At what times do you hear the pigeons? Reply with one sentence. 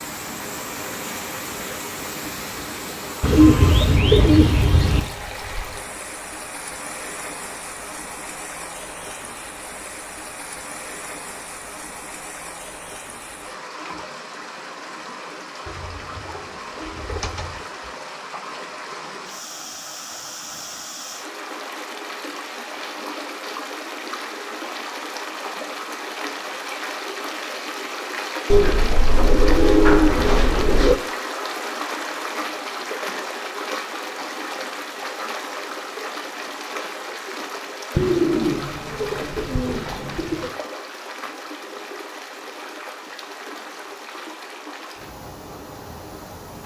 The pigeons can be heard from 3.2 to 5.0 s, from 15.7 to 17.6 s, from 28.5 to 30.9 s and from 38.0 to 40.5 s.